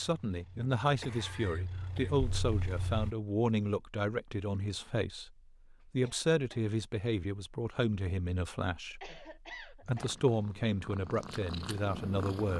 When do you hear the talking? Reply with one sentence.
You can hear the talking from 0.0 to 12.5 s.